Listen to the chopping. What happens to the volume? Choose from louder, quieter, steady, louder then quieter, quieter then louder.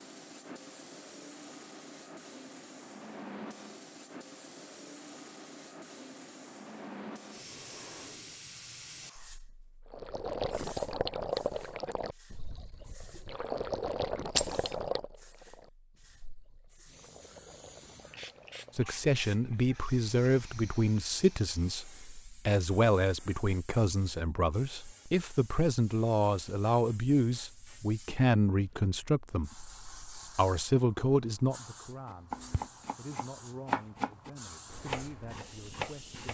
louder then quieter.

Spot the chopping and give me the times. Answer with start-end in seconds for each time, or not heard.
32.0-36.2.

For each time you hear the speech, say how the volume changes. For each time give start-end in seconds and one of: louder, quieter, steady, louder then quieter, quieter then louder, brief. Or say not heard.
18.8-36.2 quieter.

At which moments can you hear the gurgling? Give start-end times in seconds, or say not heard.
9.9-18.9.